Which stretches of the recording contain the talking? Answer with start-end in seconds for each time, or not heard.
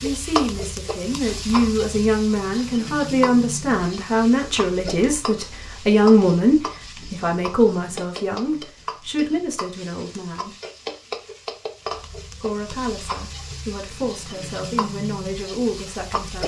0.0-10.5, 12.4-16.4.